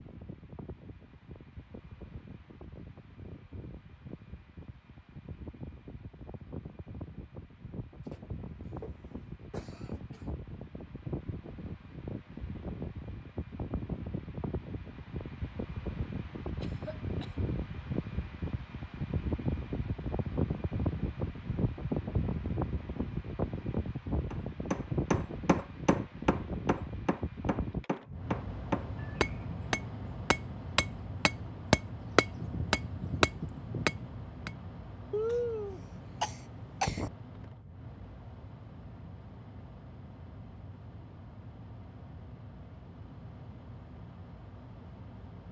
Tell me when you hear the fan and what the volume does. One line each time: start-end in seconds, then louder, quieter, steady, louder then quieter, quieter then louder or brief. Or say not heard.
0.0-45.4 louder then quieter.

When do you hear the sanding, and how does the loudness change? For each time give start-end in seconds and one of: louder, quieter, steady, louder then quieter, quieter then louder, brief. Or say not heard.
not heard.